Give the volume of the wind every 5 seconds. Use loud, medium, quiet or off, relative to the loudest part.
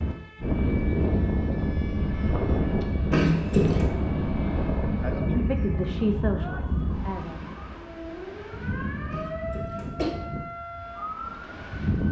loud, medium, medium.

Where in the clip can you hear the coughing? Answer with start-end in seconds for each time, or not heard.
3.1-3.9, 9.1-10.1.